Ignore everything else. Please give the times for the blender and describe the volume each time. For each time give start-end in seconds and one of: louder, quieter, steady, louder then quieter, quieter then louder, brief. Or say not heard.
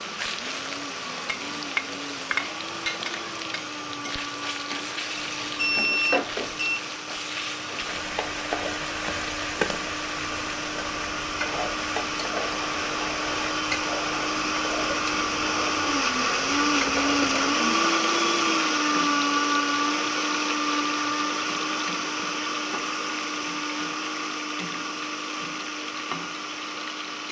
0.0-27.2 louder then quieter.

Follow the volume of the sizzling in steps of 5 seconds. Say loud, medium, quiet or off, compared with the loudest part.
loud, loud, loud, loud, medium, medium.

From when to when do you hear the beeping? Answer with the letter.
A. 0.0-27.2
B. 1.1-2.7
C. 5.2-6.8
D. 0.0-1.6
C.